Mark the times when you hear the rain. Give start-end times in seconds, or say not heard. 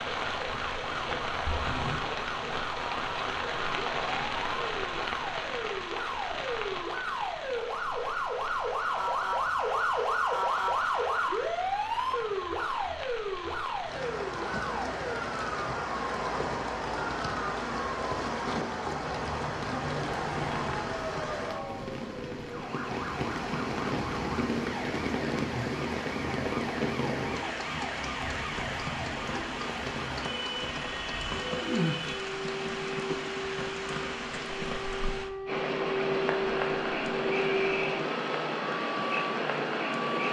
0.0-40.2.